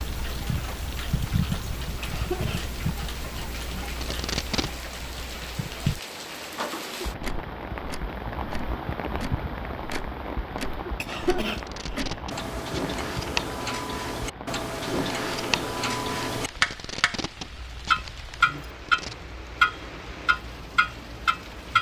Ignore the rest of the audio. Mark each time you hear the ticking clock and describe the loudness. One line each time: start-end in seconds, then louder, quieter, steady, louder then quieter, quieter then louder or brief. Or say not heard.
0.0-21.7 louder.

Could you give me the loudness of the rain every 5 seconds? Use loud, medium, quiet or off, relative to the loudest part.
medium, loud, loud, medium, medium.